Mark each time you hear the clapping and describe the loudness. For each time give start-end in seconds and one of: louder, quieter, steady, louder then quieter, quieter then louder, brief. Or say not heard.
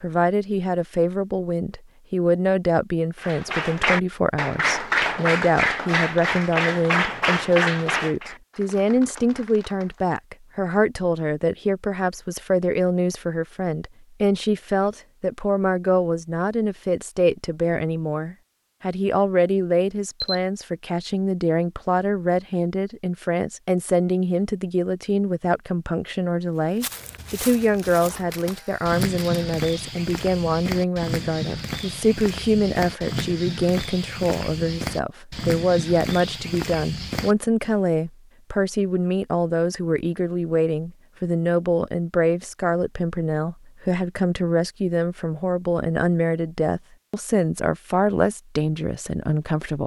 3.2-10.2 quieter.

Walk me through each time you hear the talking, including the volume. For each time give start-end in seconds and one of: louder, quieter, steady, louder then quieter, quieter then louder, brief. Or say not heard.
0.0-49.8 steady.